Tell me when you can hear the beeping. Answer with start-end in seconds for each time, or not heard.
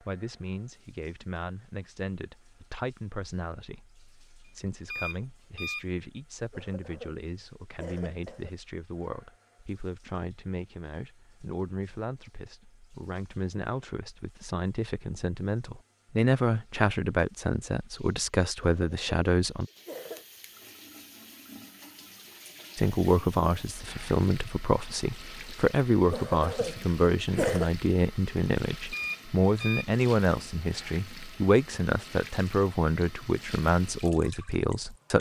4.5-5.8, 28.9-29.9.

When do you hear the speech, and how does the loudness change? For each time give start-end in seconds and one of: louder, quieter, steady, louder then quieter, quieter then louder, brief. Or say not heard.
0.0-19.6 louder
22.8-35.1 steady.